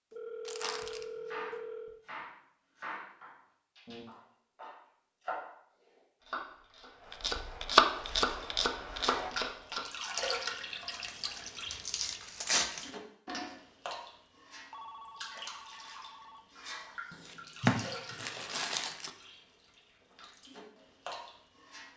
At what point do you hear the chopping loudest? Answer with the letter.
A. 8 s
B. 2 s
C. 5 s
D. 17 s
A.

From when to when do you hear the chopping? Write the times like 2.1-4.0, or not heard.
0.6-10.3.